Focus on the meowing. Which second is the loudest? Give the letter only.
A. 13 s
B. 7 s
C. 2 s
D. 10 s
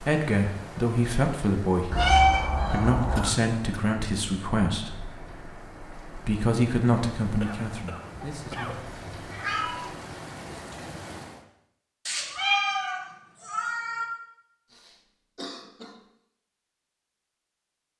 C.